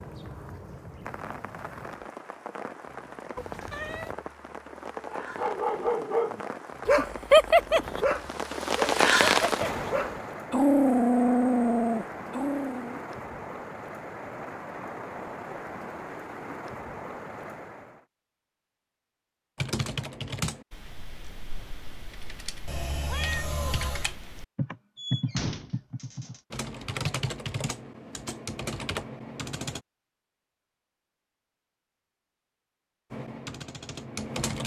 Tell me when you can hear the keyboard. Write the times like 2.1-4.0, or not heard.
19.6-29.8, 33.1-34.6.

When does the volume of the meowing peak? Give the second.
23 s.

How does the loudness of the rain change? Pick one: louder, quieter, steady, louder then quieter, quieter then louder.
louder then quieter.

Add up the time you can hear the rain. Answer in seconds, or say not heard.
18 s.